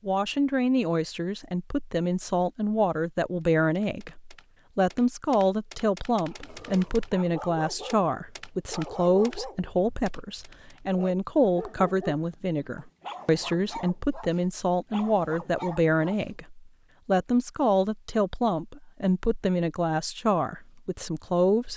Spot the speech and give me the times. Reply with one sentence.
You can hear the speech from 0.1 to 21.7 s.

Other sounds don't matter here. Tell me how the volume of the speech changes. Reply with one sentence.
The volume of the speech stays about the same.